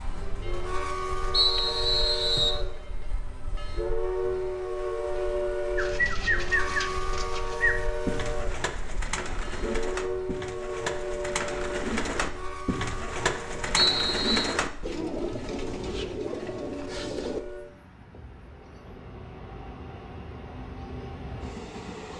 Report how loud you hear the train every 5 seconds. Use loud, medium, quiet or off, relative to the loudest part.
loud, loud, loud, medium, medium.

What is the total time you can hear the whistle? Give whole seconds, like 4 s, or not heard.
2 s.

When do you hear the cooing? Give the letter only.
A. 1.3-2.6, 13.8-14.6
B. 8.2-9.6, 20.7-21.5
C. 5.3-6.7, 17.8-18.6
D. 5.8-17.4
D.